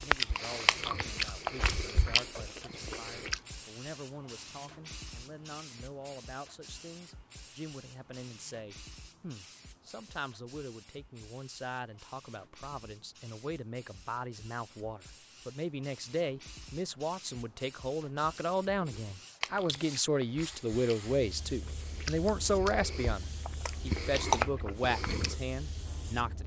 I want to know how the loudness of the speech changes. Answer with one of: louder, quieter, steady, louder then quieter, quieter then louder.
louder.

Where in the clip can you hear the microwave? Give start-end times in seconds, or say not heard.
not heard.